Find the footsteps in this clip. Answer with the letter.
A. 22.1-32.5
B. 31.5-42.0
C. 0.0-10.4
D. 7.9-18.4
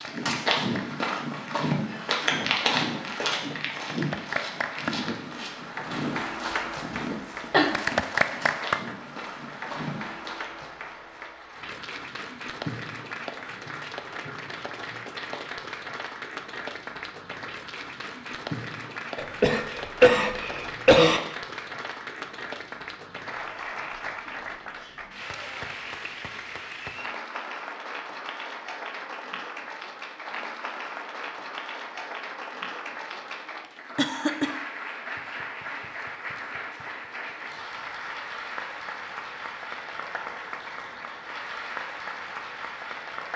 C.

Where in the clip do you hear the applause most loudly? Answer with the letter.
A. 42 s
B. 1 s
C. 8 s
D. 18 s
C.